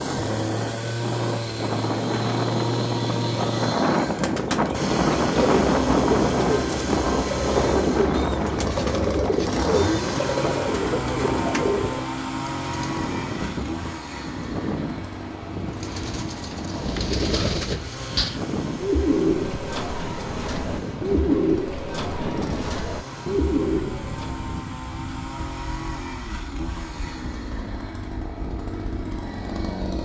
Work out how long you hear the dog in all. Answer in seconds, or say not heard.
not heard.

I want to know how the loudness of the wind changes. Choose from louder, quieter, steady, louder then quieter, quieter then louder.
quieter.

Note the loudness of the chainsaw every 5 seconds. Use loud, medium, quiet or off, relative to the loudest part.
loud, loud, loud, medium, medium, medium.